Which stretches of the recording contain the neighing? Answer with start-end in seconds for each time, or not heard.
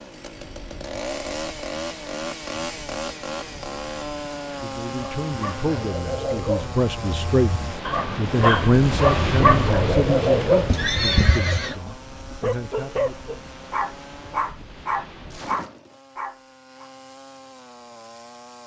10.7-11.8.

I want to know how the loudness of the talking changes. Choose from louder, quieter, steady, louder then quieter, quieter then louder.
louder then quieter.